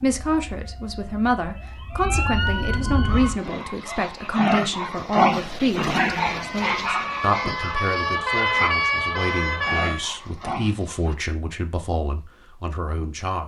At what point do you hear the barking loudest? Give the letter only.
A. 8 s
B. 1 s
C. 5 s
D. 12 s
C.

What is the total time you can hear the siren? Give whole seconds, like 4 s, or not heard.
7 s.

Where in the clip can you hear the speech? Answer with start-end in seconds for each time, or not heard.
0.0-13.4.